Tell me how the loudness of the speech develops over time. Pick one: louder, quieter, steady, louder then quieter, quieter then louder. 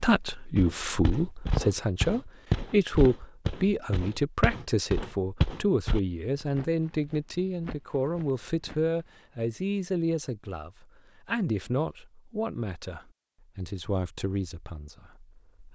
quieter.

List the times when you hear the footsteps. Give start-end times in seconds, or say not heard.
0.6-9.2.